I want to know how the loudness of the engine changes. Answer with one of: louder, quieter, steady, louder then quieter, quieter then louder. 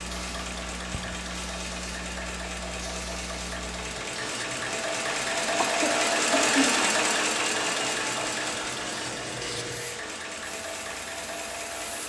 louder then quieter.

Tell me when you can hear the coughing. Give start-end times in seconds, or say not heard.
5.5-6.7.